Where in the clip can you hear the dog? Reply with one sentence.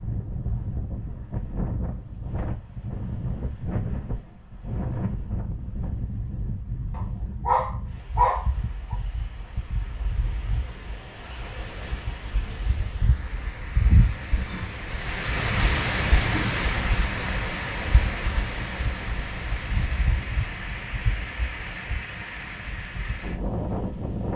You can hear the dog from 7.0 to 8.9 s.